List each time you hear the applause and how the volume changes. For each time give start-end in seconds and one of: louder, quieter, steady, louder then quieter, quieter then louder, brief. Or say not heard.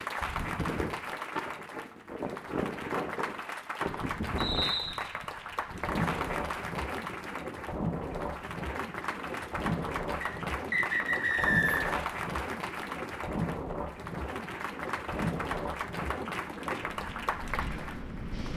0.0-18.5 steady.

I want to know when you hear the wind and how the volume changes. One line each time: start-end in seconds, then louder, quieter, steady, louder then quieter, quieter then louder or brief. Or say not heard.
0.0-18.5 steady.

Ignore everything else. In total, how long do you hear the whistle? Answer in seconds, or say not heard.
2 s.